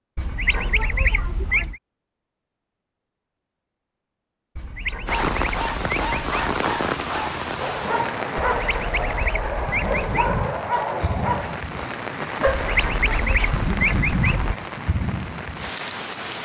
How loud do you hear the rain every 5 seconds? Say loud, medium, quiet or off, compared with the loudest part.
off, loud, loud, loud.